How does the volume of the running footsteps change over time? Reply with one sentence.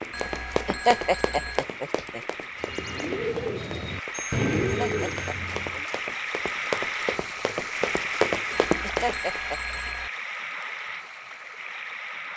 The volume of the running footsteps goes down, then up.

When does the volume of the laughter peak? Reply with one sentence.
The volume of the laughter peaks at 1 second.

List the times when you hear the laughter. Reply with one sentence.
The laughter can be heard from 0.7 to 2.2 s, from 4.6 to 6.2 s and from 8.8 to 9.8 s.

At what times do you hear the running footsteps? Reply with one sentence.
You can hear the running footsteps from 0.0 to 9.4 s.